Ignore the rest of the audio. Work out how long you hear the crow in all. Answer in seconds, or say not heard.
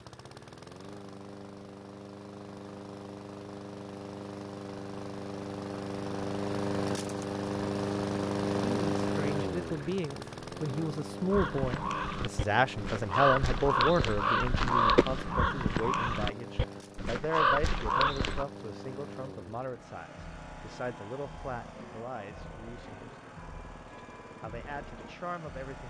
7 s.